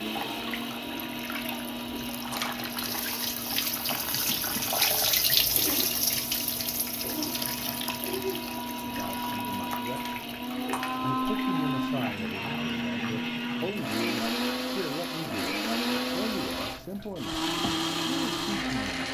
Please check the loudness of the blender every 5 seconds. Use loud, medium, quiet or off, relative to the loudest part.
medium, medium, loud, loud.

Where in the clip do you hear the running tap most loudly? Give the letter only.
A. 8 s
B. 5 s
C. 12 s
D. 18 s
B.